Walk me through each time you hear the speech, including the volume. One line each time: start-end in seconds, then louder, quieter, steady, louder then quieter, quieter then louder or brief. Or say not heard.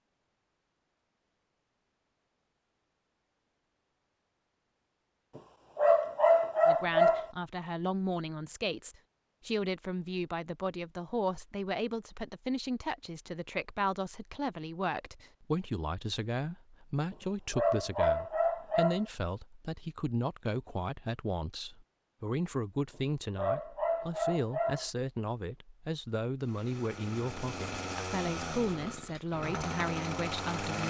6.7-30.8 steady.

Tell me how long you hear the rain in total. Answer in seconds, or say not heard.
not heard.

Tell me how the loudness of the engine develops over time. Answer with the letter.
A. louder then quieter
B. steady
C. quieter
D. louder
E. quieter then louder
D.